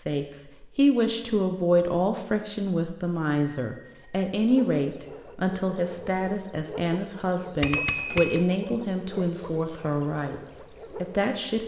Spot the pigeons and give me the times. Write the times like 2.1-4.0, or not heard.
not heard.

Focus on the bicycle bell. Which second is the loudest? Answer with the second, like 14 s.
8 s.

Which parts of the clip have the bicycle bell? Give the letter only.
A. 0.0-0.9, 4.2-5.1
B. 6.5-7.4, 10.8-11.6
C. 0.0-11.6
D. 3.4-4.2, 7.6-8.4
D.